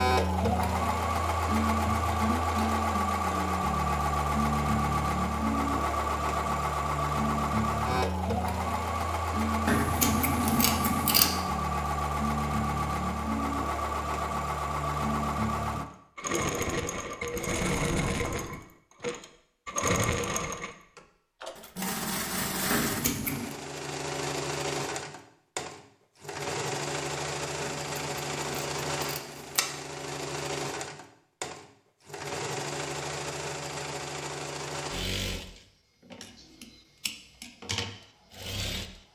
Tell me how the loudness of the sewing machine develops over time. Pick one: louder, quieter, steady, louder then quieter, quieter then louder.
quieter.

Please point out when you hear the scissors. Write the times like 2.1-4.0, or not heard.
9.7-11.3, 22.7-23.6, 27.6-29.6.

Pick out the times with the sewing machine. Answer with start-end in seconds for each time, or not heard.
0.0-39.1.